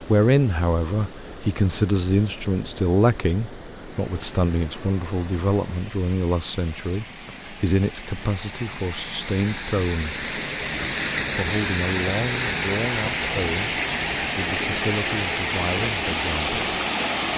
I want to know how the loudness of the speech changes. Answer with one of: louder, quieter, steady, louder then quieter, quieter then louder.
quieter.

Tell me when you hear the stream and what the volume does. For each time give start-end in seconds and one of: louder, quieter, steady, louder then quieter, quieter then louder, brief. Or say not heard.
0.0-17.3 louder.